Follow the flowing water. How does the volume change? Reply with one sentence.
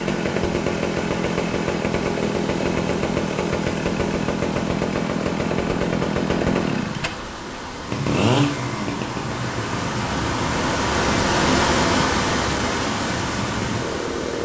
The loudness of the flowing water goes up.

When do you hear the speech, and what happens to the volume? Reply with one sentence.
The speech can't be heard in this clip.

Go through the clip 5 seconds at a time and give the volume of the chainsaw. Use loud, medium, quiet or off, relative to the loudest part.
loud, loud, medium.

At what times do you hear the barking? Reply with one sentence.
You can't hear the barking here.